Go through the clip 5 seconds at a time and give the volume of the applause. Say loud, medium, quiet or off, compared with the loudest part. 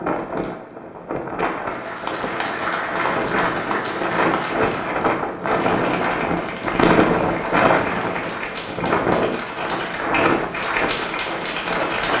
loud, medium, loud.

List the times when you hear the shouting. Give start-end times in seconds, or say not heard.
not heard.